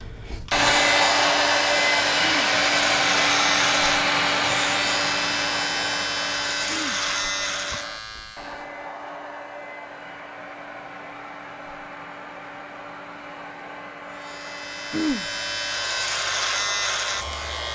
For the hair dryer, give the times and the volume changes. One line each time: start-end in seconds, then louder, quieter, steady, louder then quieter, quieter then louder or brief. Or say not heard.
0.0-17.6 quieter.